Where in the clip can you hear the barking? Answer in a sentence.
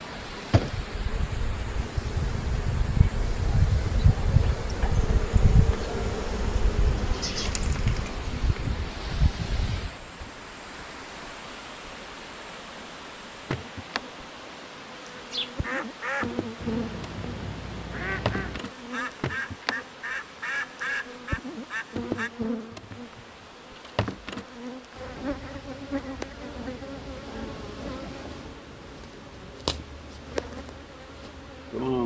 You can't hear the barking here.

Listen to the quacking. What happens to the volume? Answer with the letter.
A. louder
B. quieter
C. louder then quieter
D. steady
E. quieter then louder
D.